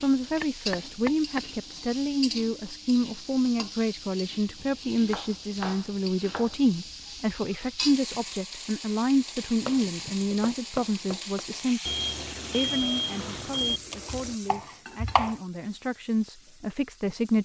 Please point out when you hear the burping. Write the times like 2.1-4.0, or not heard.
not heard.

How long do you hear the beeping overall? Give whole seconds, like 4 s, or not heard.
2 s.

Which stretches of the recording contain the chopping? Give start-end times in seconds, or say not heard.
0.2-1.4, 4.5-6.8, 9.3-11.4, 13.1-15.3.